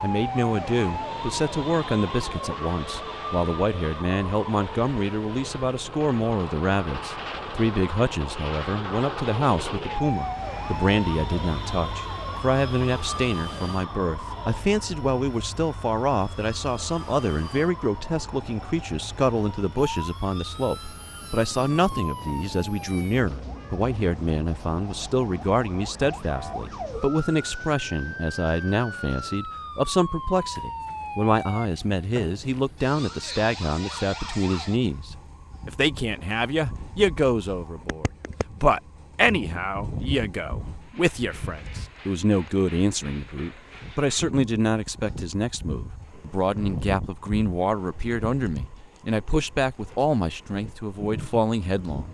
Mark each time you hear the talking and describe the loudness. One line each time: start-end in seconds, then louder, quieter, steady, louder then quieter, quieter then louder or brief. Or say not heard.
0.0-52.1 steady.